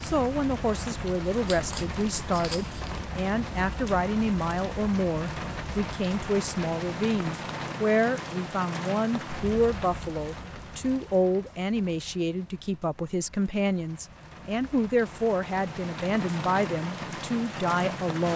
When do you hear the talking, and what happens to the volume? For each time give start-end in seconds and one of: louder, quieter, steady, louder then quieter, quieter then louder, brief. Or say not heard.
0.0-18.3 steady.